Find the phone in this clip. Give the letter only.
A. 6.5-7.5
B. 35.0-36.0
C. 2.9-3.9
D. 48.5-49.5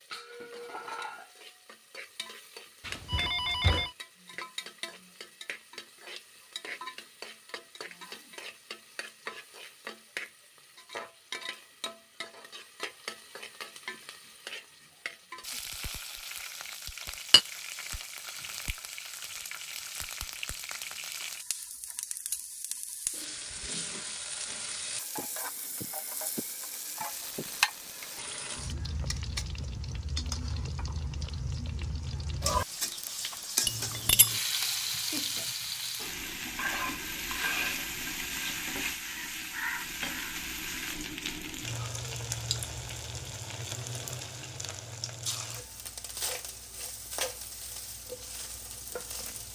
C.